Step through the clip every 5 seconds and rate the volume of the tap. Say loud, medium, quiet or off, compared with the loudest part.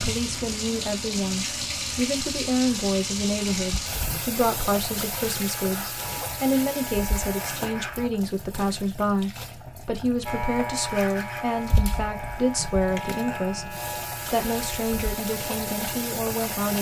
loud, medium, medium, loud.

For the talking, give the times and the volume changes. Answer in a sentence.
The talking can be heard from 0.0 to 16.7 s, at a steady volume.